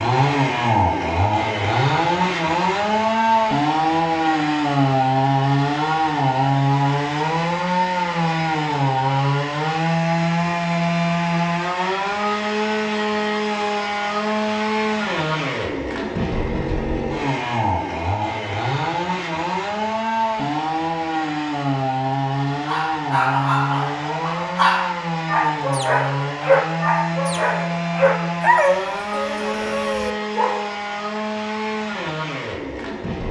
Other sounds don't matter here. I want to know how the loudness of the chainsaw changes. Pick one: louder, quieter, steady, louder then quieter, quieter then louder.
quieter.